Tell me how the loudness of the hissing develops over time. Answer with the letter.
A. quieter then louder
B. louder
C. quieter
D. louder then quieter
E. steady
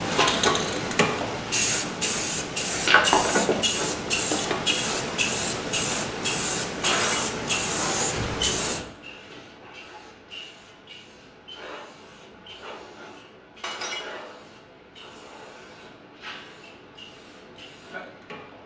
C.